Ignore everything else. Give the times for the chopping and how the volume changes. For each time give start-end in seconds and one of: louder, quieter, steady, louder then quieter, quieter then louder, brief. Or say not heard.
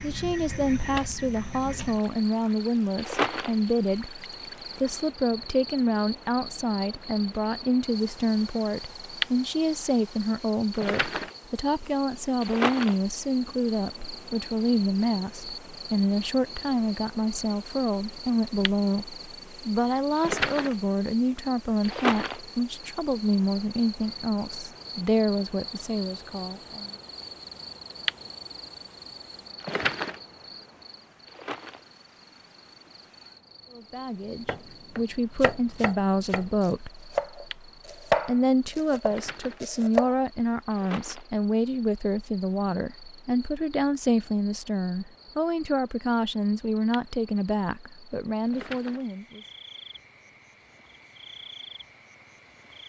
34.5-40.1 louder then quieter.